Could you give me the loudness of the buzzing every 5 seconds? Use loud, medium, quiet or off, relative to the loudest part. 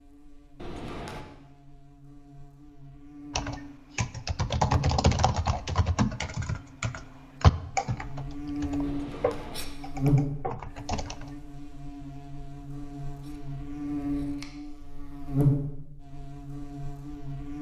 quiet, medium, loud, loud.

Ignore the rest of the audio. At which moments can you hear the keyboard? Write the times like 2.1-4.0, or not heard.
3.4-11.3.